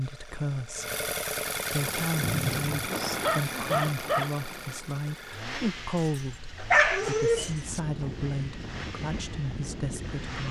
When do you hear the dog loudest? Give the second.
7 s.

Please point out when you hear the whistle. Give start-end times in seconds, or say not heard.
2.2-2.9.